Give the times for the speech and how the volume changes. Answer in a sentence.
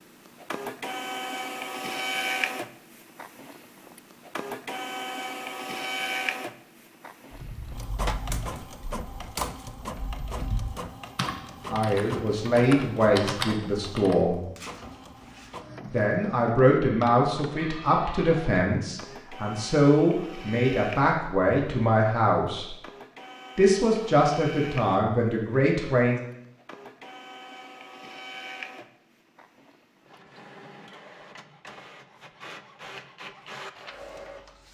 The speech can be heard briefly from 11.7 to 14.4 s; from 15.9 to 22.8 s, at a steady volume; and briefly from 23.6 to 26.2 s.